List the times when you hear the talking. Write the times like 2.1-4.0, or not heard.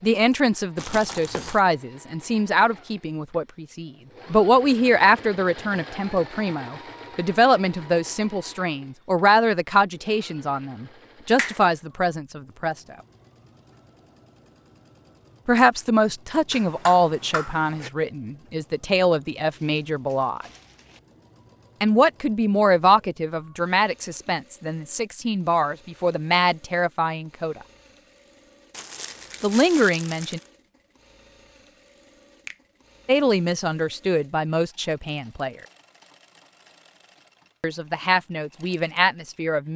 0.0-12.9, 15.4-20.4, 21.8-27.6, 29.4-30.4, 33.0-35.5, 37.6-39.7.